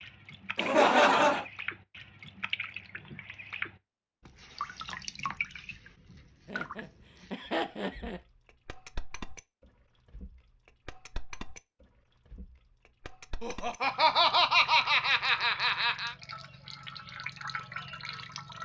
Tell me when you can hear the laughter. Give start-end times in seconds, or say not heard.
0.6-1.4, 6.5-8.2, 13.4-16.1.